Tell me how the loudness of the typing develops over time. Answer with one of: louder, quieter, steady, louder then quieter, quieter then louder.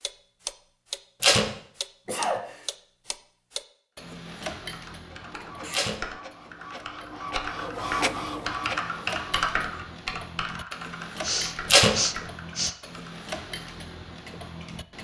louder then quieter.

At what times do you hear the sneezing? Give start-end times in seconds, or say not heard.
2.0-2.7, 5.3-6.0, 11.2-12.8.